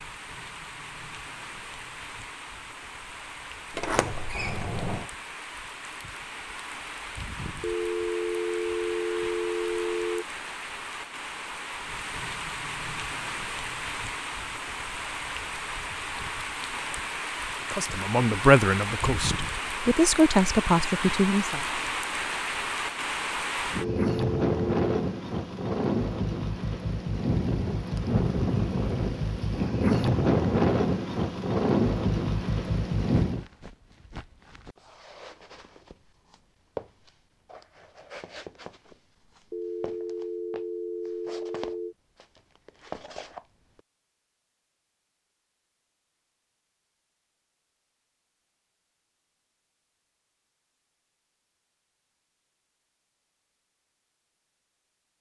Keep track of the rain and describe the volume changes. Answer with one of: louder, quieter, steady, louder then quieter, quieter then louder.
louder.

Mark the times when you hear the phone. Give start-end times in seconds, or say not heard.
7.6-10.2, 23.8-24.9, 39.5-42.0.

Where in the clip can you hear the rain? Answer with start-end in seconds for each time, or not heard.
0.0-33.5.